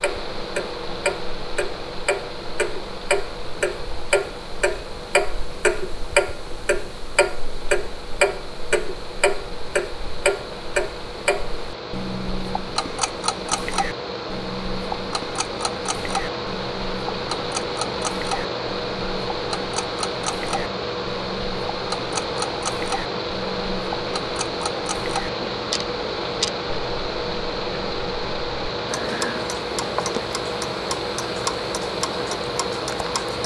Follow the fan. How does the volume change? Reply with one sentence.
The loudness of the fan goes up.